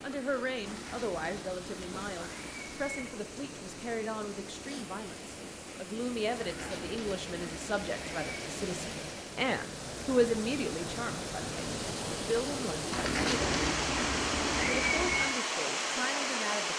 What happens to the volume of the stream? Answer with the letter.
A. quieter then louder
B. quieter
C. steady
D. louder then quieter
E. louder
E.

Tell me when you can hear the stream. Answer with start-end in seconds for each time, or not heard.
0.0-16.7.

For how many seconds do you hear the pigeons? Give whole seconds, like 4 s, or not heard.
7 s.